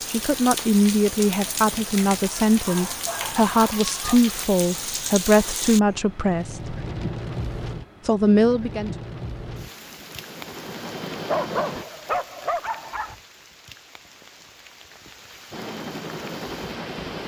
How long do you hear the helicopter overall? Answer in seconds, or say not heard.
4 s.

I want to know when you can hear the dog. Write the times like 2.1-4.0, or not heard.
2.6-4.2, 11.2-13.2.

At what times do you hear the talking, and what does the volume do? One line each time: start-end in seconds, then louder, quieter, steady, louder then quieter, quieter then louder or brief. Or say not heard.
0.1-6.8 steady
8.1-8.9 brief.